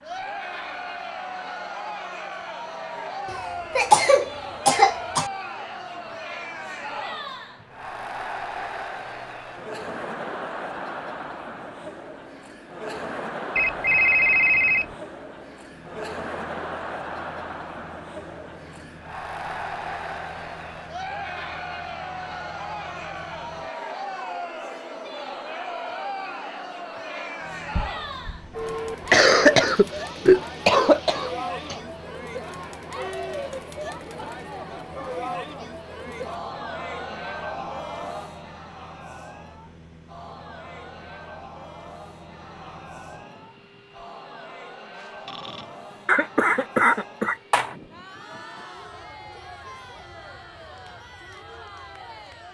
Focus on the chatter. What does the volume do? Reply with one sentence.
The loudness of the chatter goes down.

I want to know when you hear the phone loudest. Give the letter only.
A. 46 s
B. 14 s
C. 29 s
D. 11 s
B.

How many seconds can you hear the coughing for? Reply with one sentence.
The coughing can be heard for 6 seconds in total.